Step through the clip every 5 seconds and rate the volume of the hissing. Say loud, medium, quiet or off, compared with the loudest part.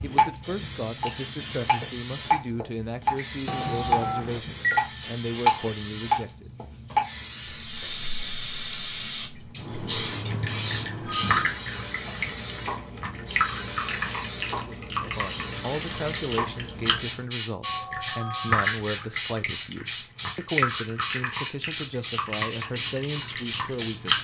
medium, loud, loud, loud, loud.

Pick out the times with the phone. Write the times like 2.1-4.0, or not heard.
3.5-4.8, 10.4-11.5, 17.6-18.7.